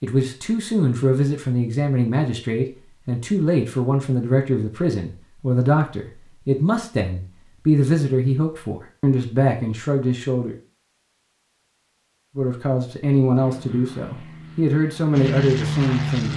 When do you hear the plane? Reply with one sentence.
You can hear the plane from 13.3 to 16.3 s.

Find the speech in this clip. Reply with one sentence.
You can hear the speech from 0.0 to 10.6 s and from 12.3 to 16.3 s.